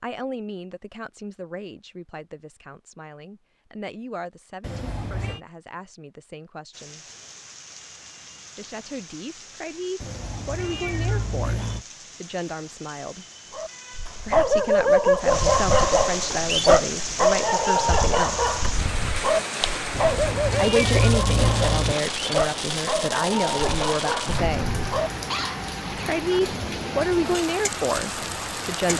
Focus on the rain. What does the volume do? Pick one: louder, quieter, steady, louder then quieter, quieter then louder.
louder.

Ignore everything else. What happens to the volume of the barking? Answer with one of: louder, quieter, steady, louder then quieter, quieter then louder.
quieter.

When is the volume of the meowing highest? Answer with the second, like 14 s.
21 s.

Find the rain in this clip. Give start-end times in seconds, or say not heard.
6.7-28.9.